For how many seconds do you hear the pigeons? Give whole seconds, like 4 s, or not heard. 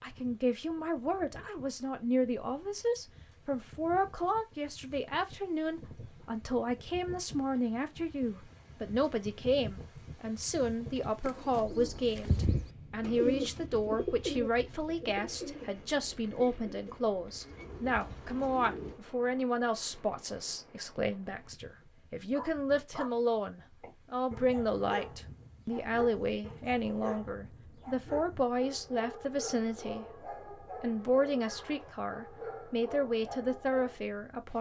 8 s.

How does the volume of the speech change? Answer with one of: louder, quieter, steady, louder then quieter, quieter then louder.
steady.